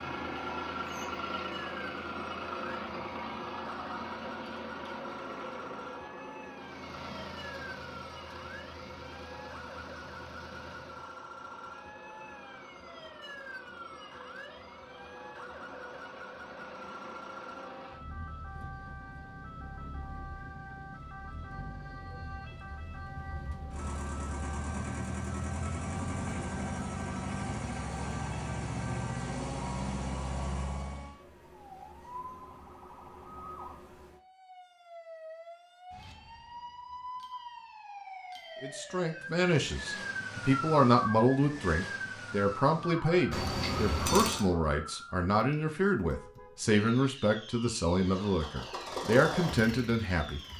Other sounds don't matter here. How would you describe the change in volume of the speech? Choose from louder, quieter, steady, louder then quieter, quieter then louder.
steady.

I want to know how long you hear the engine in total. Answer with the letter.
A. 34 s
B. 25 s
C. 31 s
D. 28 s
A.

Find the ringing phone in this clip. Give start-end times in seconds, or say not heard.
43.3-44.5.